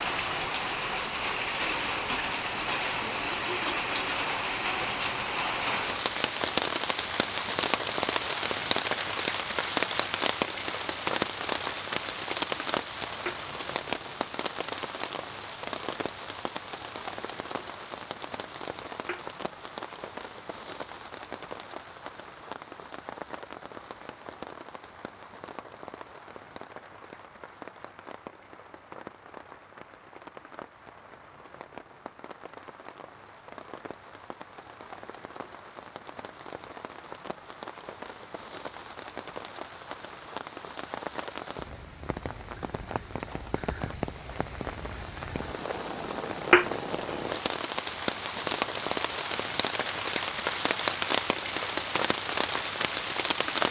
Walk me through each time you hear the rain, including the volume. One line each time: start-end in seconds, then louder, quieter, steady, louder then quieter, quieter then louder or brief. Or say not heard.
0.0-53.6 quieter then louder.